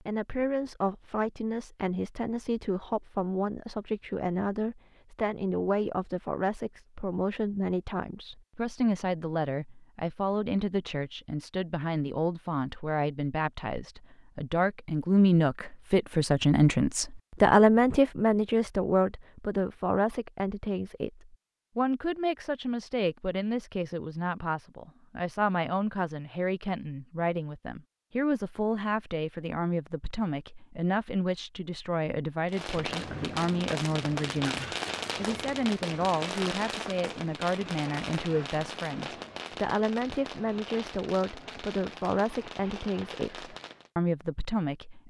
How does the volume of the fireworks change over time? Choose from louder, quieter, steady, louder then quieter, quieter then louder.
quieter.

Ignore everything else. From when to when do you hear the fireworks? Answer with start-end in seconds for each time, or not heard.
32.5-43.9.